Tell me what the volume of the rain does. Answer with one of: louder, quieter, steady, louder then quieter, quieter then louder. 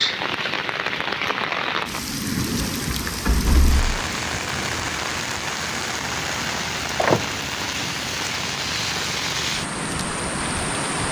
steady.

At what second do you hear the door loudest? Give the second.
7 s.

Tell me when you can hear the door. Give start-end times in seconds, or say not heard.
3.2-4.0, 6.5-7.4.